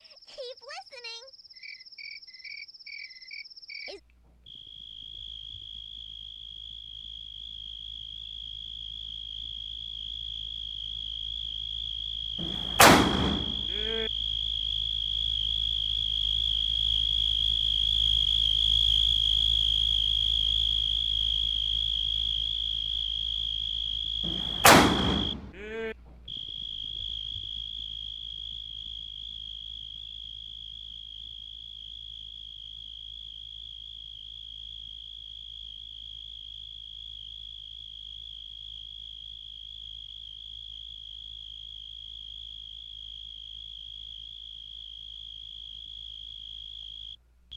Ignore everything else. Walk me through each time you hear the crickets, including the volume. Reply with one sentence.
You can hear the crickets from 0.0 to 47.5 s, getting louder then quieter.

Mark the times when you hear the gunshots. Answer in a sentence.
The gunshots can be heard from 12.4 to 14.1 s and from 24.2 to 25.9 s.